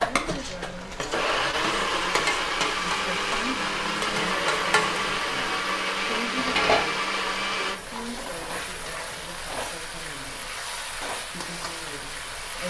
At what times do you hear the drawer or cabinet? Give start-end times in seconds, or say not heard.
not heard.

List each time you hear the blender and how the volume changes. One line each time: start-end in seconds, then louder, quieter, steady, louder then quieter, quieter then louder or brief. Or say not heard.
0.0-7.8 steady.